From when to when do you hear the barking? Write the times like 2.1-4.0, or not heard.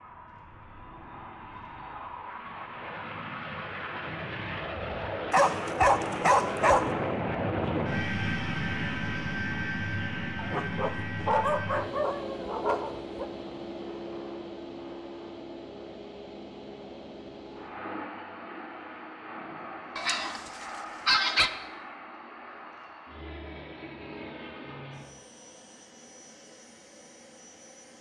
5.3-6.9, 10.3-13.2, 19.9-21.5.